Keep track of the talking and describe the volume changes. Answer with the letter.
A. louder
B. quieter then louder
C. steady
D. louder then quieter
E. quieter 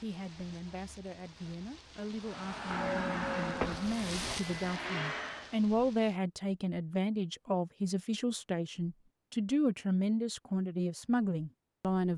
A.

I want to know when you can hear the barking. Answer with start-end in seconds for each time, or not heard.
not heard.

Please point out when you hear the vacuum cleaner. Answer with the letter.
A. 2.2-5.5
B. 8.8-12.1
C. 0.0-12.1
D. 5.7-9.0
A.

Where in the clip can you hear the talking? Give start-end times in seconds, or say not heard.
0.0-12.1.